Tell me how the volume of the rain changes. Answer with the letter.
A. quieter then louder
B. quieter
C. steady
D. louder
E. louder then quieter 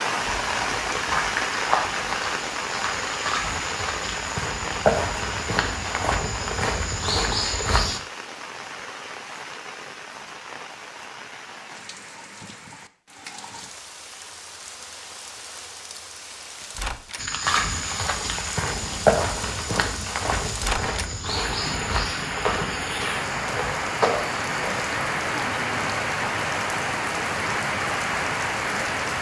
A.